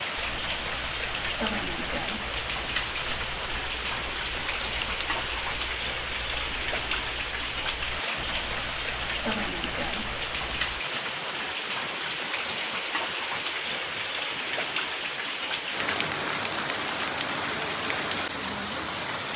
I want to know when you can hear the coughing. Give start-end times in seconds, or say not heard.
not heard.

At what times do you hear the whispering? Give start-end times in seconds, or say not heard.
not heard.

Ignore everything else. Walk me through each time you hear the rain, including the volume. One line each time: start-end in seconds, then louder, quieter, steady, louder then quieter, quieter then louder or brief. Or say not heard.
0.0-19.3 steady.